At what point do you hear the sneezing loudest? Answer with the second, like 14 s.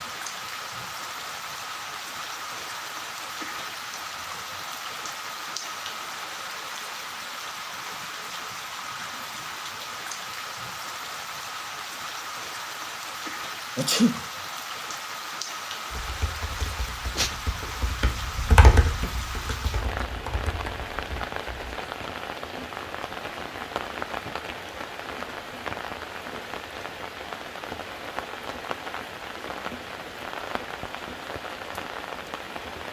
14 s.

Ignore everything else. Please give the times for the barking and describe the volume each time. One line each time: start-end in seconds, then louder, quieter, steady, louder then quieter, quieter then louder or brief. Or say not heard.
not heard.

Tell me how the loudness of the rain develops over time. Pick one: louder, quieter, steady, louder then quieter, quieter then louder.
steady.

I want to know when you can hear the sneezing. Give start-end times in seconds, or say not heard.
13.8-14.2, 16.6-17.3.